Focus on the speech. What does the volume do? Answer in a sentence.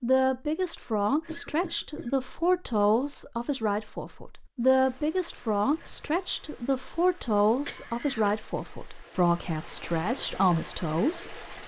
The volume of the speech stays about the same.